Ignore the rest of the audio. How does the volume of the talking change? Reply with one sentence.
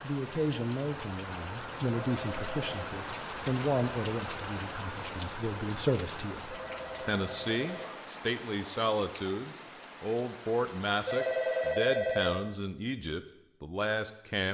The loudness of the talking stays about the same.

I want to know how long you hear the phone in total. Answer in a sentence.
You can hear the phone for 4 seconds altogether.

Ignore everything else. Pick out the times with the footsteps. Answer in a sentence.
The footsteps can't be heard in this clip.